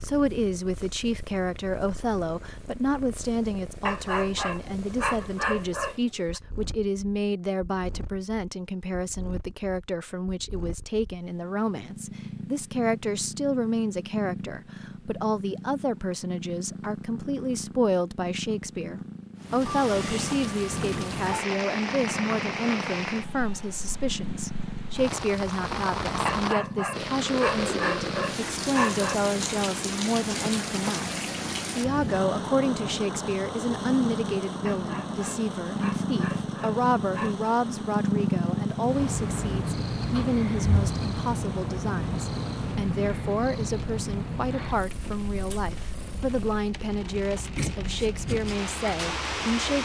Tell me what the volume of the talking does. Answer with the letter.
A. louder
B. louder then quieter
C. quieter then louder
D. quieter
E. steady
E.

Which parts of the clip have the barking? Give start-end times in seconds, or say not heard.
3.9-6.4, 26.2-29.2, 34.6-37.5.